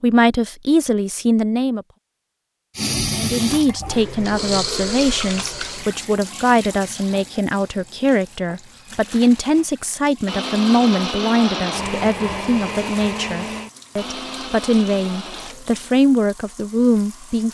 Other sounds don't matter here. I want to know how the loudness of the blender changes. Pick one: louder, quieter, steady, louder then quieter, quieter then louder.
quieter.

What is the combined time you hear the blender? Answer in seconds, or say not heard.
5 s.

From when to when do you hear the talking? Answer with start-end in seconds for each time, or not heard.
0.0-1.9, 3.1-17.5.